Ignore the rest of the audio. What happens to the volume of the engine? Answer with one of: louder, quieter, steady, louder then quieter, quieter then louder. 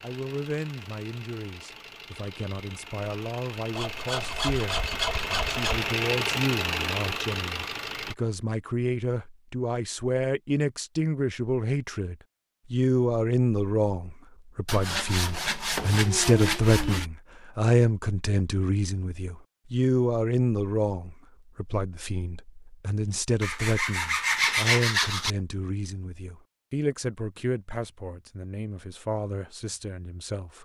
louder.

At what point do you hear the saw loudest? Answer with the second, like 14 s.
25 s.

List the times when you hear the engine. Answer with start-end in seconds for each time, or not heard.
0.0-8.2.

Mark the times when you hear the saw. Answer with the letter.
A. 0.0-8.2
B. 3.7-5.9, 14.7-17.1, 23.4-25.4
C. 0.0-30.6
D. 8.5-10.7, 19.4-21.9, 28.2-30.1
B.